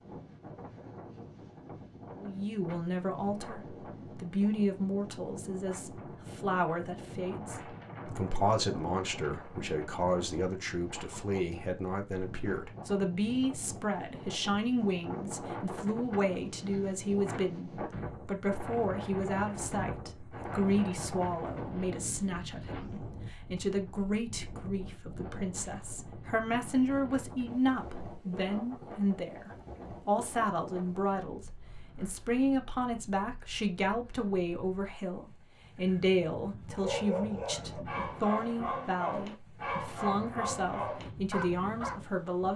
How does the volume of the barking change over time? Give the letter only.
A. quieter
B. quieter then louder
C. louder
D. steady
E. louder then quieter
D.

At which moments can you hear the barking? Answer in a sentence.
You can hear the barking from 36.7 to 42.0 s.